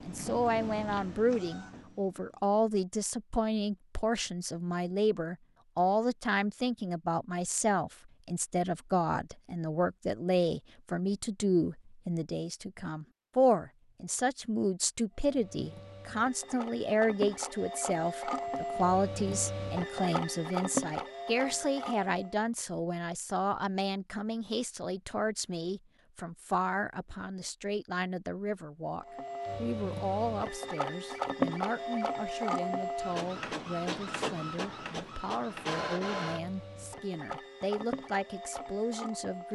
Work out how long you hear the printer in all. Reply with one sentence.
You can hear the printer for 20 seconds altogether.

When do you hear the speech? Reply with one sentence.
The speech can be heard from 0.1 to 39.4 s.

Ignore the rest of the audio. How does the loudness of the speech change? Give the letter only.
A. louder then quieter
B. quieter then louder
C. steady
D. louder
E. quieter
E.